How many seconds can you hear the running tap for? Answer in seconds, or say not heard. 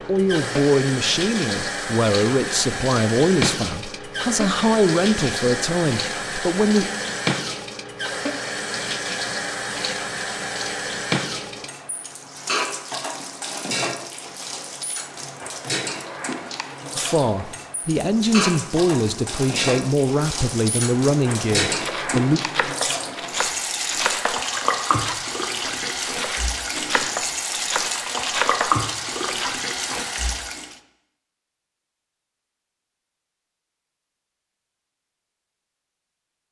31 s.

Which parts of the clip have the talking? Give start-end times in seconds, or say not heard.
0.1-6.9, 16.9-22.4.